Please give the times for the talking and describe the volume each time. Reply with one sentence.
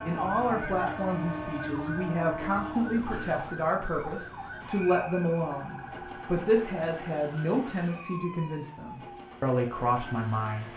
The talking can be heard from 0.0 to 10.7 s, at a steady volume.